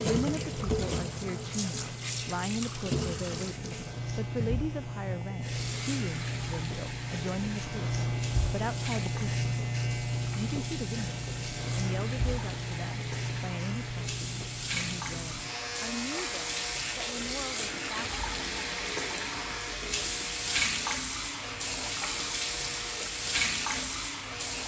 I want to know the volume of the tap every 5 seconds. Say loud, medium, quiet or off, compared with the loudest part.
loud, medium, medium, loud, loud.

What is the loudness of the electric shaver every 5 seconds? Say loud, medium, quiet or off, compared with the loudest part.
medium, loud, loud, medium, medium.